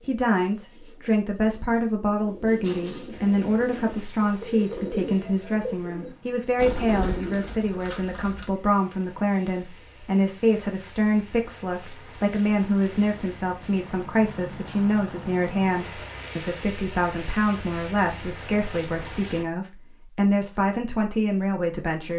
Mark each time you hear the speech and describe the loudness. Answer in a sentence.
You can hear the speech from 0.1 to 22.1 s, at a steady volume.